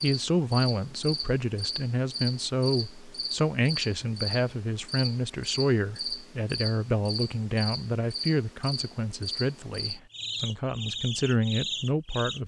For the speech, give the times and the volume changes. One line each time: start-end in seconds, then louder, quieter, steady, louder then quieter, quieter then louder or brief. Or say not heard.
0.0-12.4 steady.